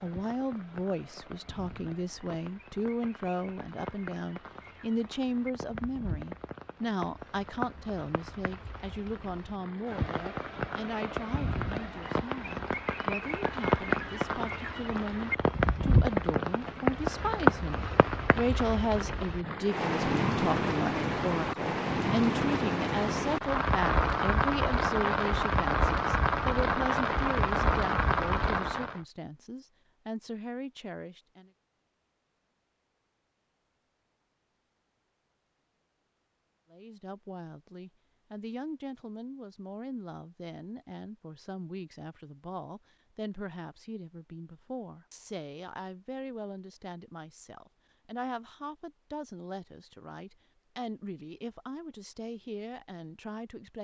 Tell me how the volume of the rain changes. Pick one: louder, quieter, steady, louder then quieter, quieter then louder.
louder.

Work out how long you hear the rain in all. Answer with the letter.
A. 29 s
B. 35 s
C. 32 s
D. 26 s
A.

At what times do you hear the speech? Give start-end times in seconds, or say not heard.
0.0-31.5, 36.7-53.7.